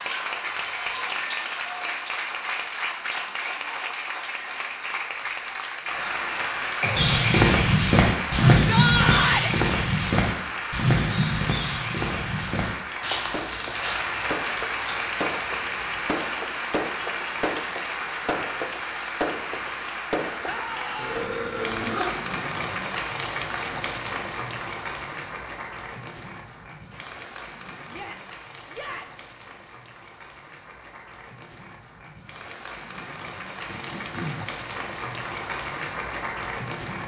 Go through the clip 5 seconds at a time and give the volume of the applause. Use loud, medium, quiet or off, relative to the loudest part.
loud, loud, loud, loud, loud, medium, medium, loud.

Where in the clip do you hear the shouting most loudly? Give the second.
9 s.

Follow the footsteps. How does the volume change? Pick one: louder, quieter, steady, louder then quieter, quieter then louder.
quieter.